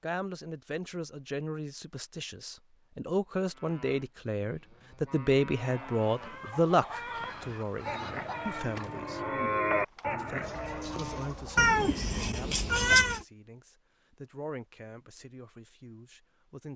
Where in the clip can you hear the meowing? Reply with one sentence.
You can hear the meowing from 11.6 to 13.2 s.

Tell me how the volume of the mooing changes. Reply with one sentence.
The loudness of the mooing goes up.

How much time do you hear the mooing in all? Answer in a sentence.
The mooing can be heard for 8 seconds in total.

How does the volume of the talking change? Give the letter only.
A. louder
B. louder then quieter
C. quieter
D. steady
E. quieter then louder
B.